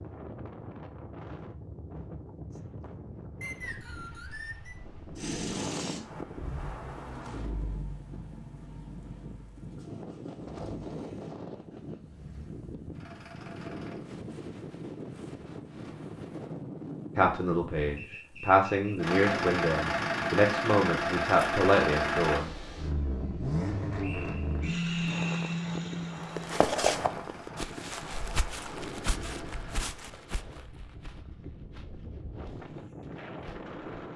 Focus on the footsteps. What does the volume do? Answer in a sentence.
The loudness of the footsteps goes down.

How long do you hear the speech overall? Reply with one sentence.
The speech can be heard for 5 seconds in total.